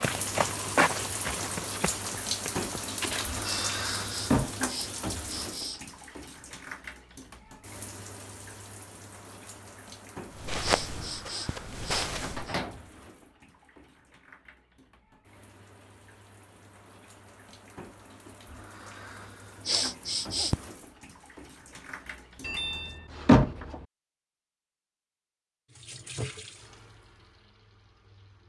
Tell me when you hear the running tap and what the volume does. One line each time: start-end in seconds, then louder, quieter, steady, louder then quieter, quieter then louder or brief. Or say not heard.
0.0-22.9 quieter then louder
25.7-28.4 brief.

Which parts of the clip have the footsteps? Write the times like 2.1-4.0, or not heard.
0.0-3.5, 10.3-12.5.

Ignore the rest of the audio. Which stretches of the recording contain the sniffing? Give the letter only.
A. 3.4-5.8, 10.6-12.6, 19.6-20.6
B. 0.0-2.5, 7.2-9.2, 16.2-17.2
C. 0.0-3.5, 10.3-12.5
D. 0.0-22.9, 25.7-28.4
A.